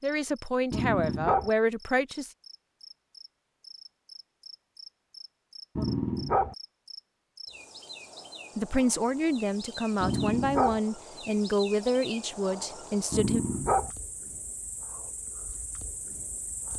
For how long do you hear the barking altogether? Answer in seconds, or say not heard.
3 s.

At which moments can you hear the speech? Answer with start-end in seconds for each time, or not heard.
0.0-2.3, 8.6-13.4.